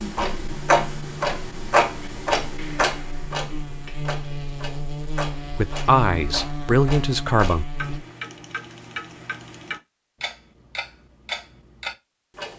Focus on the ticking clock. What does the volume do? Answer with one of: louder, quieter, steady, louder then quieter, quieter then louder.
quieter.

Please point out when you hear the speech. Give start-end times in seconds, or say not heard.
5.5-7.7.